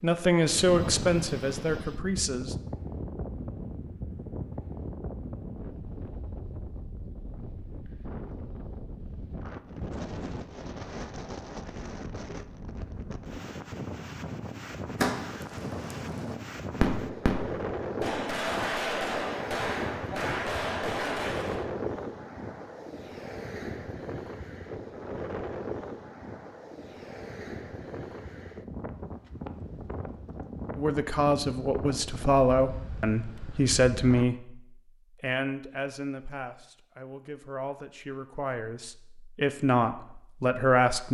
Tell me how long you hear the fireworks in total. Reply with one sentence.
The fireworks can be heard for 7 seconds in total.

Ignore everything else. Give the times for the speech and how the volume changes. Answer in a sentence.
The speech can be heard briefly from 0.0 to 2.5 s; and from 30.8 to 41.0 s, getting quieter then louder.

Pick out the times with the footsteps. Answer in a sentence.
The footsteps can't be heard in this clip.